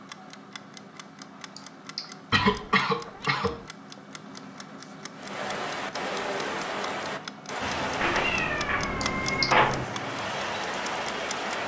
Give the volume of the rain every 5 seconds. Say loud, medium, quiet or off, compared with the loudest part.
off, loud, loud.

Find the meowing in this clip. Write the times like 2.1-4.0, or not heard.
2.3-3.6, 8.0-9.8.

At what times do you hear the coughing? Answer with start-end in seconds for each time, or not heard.
1.6-3.5, 9.0-9.6.